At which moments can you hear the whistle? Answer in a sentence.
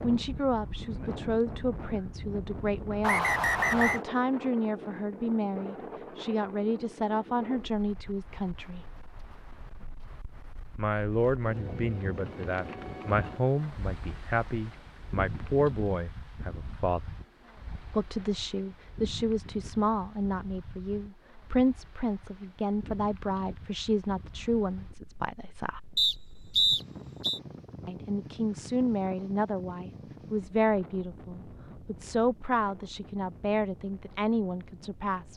You can hear the whistle from 3.0 to 4.0 s and from 25.9 to 27.4 s.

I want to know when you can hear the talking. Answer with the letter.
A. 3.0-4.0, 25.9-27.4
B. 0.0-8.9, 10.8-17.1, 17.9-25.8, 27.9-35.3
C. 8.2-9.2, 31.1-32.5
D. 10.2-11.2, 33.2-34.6
B.